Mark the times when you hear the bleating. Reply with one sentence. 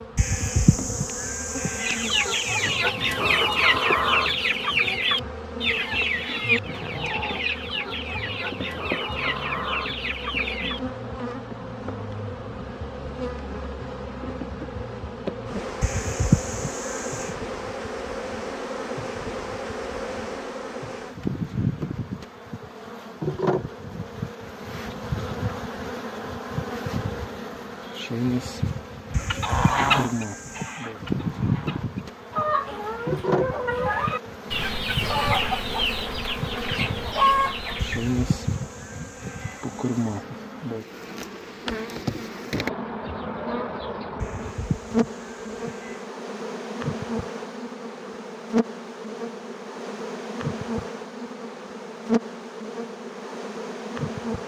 The bleating can be heard from 0.1 to 2.8 s, from 15.8 to 17.4 s, from 29.1 to 30.9 s, from 37.8 to 40.2 s and from 44.2 to 46.0 s.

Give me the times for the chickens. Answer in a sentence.
You can hear the chickens from 1.8 to 10.8 s and from 29.1 to 38.1 s.